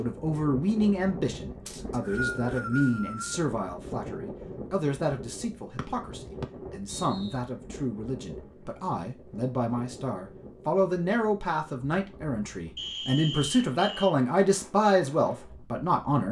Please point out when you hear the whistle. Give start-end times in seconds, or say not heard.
1.6-3.5, 5.8-7.3, 12.8-14.2.